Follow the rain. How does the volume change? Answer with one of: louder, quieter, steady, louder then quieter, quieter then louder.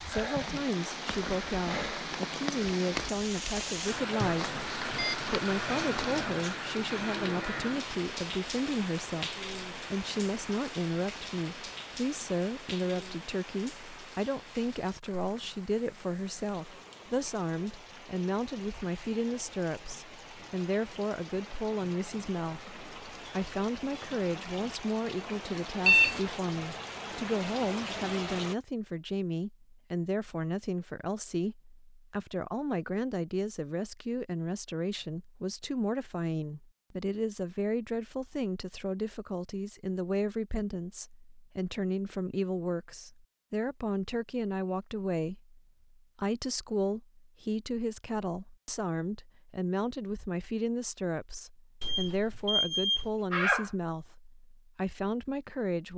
quieter then louder.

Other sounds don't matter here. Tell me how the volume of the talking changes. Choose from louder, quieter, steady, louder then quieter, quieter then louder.
steady.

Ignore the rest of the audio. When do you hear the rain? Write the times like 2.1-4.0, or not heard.
0.0-28.6.